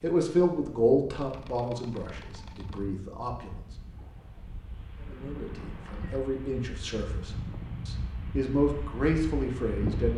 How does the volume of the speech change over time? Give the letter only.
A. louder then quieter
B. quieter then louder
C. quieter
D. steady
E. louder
B.